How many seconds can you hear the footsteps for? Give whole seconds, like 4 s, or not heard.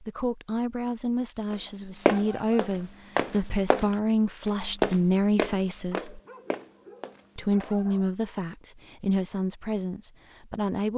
6 s.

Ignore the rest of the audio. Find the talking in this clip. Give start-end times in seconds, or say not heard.
0.0-6.2, 7.3-10.9.